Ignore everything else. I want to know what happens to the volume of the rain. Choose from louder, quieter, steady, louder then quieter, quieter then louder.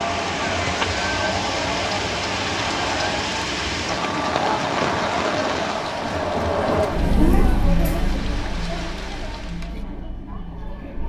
quieter.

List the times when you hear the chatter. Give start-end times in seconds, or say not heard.
0.0-11.0.